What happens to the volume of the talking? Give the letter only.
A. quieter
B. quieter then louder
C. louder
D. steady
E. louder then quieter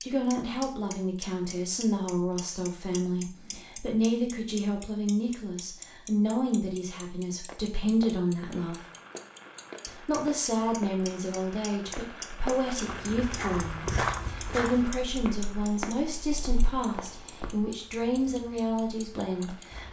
D.